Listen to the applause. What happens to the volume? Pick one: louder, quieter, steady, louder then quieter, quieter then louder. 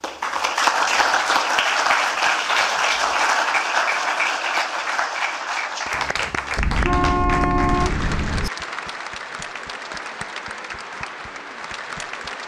quieter.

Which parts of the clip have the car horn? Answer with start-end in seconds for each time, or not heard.
6.5-8.5.